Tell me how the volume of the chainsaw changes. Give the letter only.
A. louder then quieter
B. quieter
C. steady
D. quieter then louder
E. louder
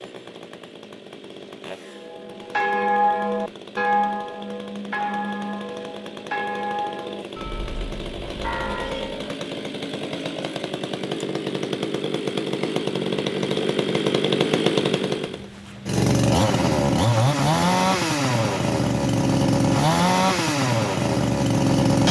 E.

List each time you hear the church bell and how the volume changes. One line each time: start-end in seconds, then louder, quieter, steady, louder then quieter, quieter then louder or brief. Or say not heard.
1.8-9.3 quieter.